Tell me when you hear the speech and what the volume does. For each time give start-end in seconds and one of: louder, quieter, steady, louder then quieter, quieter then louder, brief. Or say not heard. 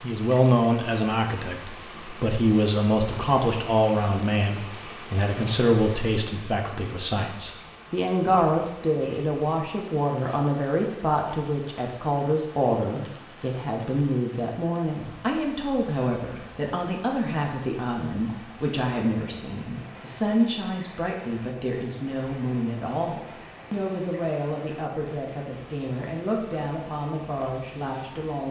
0.0-28.4 quieter.